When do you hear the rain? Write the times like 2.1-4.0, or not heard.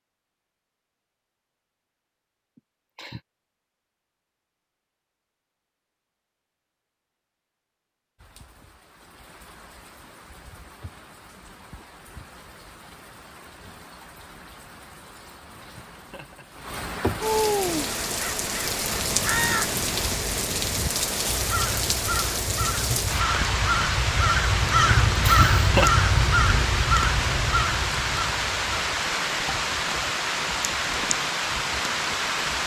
8.2-32.6.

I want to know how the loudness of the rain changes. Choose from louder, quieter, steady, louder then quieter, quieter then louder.
louder.